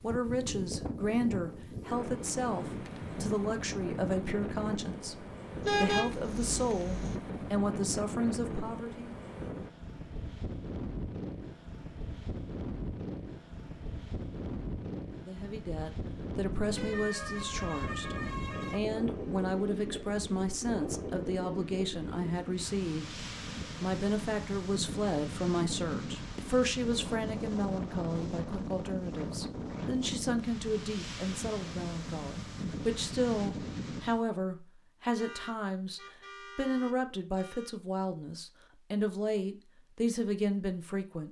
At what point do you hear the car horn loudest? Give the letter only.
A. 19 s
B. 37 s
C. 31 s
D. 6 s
D.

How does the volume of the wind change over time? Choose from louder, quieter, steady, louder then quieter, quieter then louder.
steady.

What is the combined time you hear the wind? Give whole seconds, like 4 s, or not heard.
34 s.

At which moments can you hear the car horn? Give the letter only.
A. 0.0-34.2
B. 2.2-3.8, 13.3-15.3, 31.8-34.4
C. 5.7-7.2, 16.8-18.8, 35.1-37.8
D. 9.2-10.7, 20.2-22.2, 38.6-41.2
C.